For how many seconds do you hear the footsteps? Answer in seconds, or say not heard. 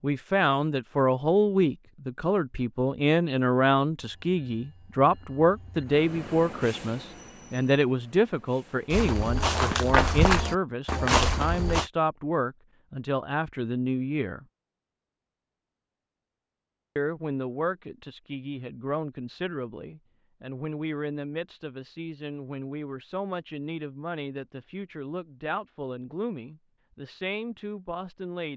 3 s.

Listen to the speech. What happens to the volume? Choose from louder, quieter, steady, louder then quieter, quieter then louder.
quieter.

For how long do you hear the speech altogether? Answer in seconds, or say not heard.
26 s.